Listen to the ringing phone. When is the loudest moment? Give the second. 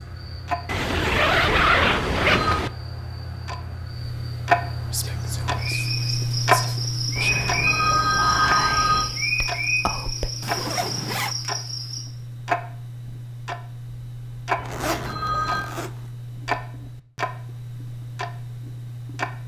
8 s.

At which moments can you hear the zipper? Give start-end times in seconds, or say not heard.
0.7-2.7, 10.4-11.3, 14.7-16.1.